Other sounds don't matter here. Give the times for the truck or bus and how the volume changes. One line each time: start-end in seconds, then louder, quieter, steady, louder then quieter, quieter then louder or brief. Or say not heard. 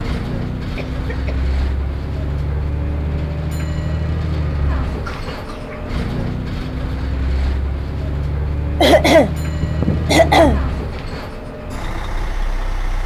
0.0-13.0 steady.